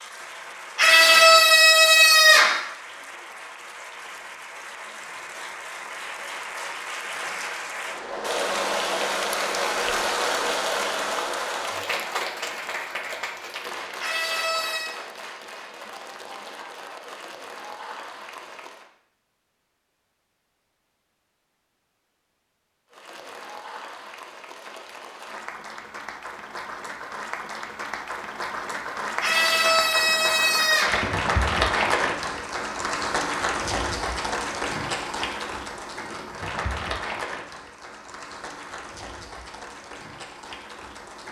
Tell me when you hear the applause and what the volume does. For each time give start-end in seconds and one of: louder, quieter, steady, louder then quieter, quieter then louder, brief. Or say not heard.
0.0-18.9 louder then quieter
22.9-41.2 louder then quieter.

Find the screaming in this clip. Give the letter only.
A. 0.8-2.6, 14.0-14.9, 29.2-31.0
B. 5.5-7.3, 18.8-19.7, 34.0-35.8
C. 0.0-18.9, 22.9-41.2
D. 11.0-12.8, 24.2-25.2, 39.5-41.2
A.